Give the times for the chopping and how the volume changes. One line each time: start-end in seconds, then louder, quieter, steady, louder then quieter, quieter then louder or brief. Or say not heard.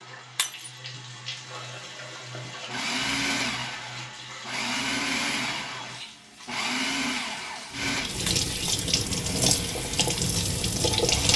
not heard.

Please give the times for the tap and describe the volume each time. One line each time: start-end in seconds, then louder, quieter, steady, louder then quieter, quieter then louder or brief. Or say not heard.
0.0-11.3 louder.